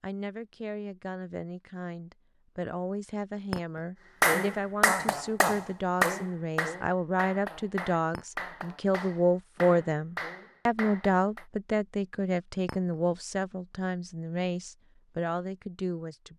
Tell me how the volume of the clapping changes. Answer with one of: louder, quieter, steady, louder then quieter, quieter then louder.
quieter.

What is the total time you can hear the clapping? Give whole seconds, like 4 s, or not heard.
7 s.